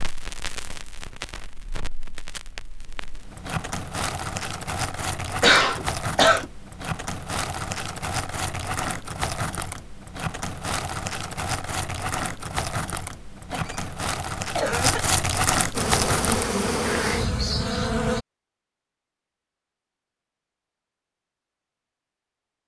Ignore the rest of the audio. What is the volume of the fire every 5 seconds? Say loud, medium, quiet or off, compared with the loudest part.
medium, medium, medium, loud, off.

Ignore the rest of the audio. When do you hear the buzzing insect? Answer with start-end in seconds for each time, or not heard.
15.7-18.2.